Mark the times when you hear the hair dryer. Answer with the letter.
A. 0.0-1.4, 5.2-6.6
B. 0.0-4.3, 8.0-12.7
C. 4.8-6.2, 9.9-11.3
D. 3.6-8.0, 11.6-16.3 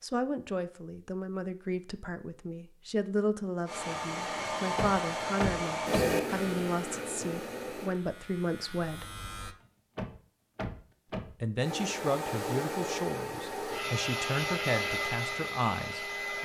D.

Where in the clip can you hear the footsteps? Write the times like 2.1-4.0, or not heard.
not heard.